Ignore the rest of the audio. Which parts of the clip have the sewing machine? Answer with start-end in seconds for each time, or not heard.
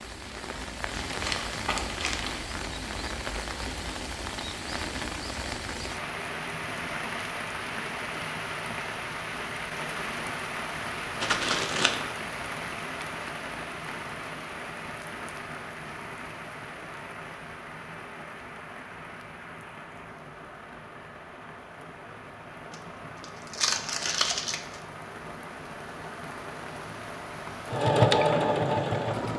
27.7-29.3.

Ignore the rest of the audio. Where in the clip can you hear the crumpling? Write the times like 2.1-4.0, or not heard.
1.1-2.4, 11.2-12.1, 22.7-24.8.